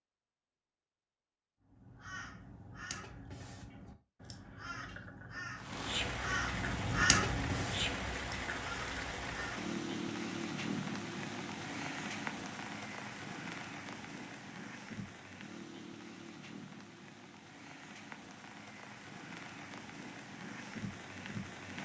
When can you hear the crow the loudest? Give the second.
7 s.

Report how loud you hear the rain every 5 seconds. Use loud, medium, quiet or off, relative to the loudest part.
off, loud, loud, medium, medium.